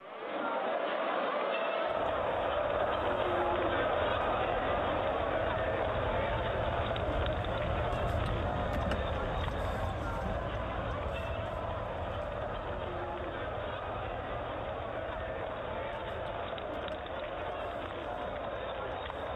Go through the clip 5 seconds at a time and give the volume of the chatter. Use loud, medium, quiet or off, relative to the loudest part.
loud, loud, medium, medium.